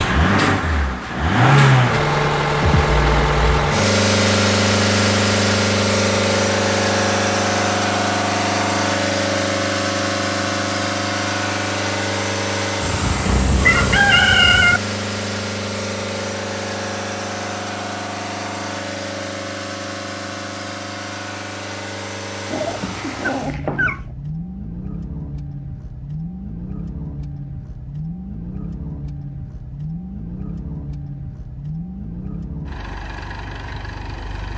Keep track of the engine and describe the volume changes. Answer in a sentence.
The loudness of the engine goes down.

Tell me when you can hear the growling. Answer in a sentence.
You can hear the growling from 22.5 to 24.1 s.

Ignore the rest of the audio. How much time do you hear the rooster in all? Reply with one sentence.
You can hear the rooster for 2 seconds altogether.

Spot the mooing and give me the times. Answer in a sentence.
The mooing can't be heard in this clip.